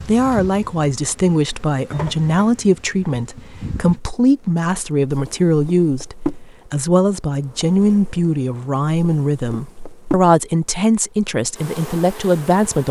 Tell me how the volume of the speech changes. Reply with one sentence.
The loudness of the speech stays about the same.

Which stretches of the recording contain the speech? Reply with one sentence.
You can hear the speech from 0.0 to 12.8 s.